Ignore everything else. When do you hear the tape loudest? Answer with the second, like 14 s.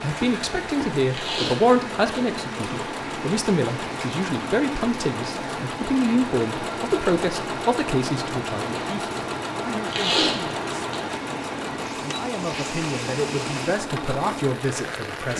10 s.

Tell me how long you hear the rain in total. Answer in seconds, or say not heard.
15 s.